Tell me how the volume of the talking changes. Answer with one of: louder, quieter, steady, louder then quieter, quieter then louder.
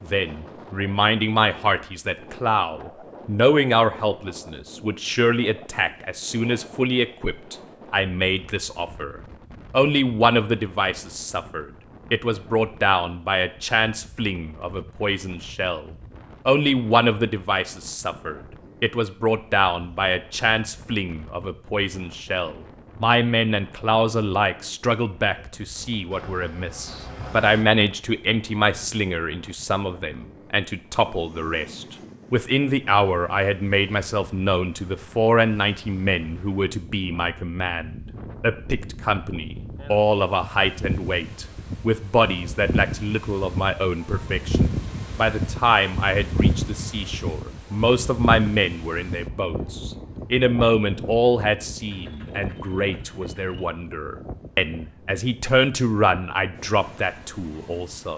steady.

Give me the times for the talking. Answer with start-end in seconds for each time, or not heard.
0.0-58.1.